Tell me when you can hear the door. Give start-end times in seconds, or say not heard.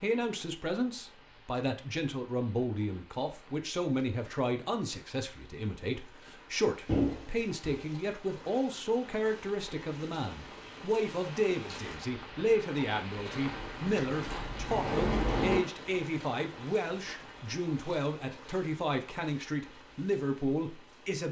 6.8-7.8, 13.5-15.6.